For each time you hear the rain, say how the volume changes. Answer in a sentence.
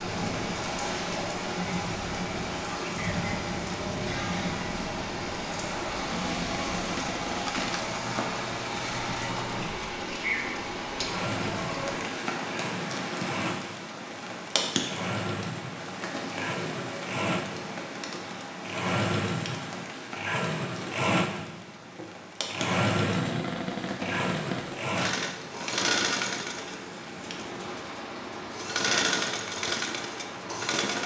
The rain can be heard from 0.0 to 31.0 s, getting quieter.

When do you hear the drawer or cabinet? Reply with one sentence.
The drawer or cabinet can be heard from 6.0 to 7.7 s and from 23.0 to 24.8 s.